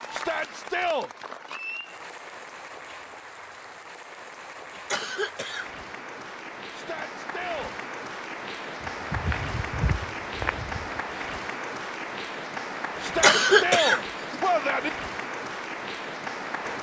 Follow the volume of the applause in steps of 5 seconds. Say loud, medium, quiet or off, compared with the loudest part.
medium, loud, loud, loud.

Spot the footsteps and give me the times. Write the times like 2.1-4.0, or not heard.
9.0-11.1.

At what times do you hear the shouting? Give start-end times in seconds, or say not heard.
0.1-1.1, 6.7-7.8, 13.0-14.9.